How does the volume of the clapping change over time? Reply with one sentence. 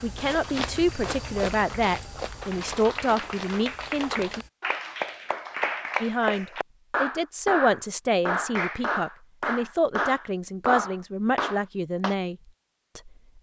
The loudness of the clapping goes up.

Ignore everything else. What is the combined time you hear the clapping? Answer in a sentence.
You can hear the clapping for 12 seconds altogether.